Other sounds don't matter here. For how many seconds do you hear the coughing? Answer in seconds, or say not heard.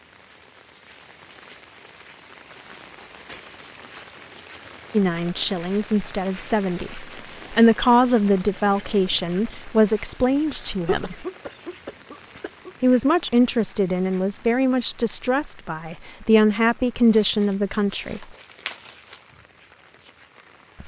2 s.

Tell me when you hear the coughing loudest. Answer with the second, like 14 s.
11 s.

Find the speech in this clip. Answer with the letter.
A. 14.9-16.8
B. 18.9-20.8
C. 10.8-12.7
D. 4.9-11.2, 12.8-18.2
D.